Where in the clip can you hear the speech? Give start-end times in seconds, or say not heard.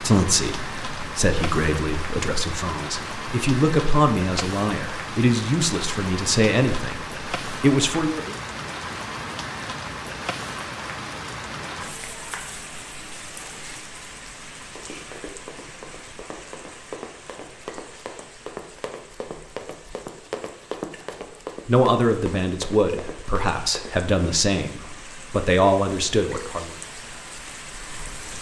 0.0-8.3, 21.6-26.8.